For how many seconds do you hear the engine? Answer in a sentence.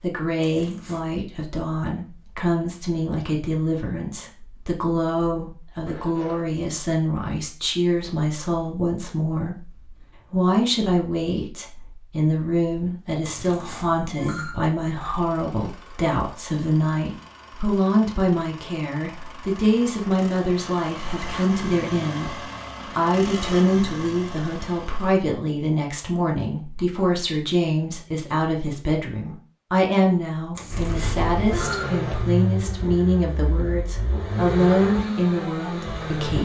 The engine can be heard for 16 seconds in total.